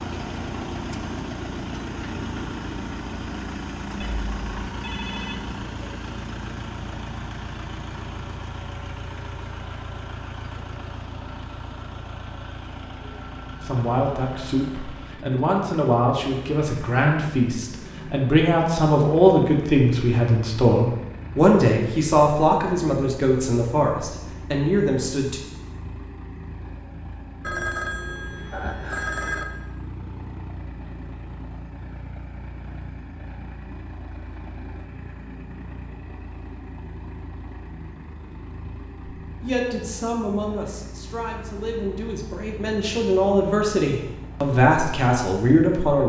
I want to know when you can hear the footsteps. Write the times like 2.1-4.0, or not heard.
not heard.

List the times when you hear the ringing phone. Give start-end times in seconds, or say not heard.
4.0-5.5, 27.4-29.4.